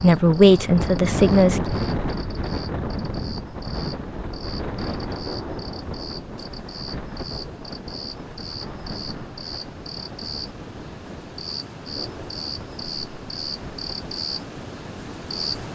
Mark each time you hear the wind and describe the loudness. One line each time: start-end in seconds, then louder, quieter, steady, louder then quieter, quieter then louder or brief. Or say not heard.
0.0-15.7 quieter.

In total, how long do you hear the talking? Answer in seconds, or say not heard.
2 s.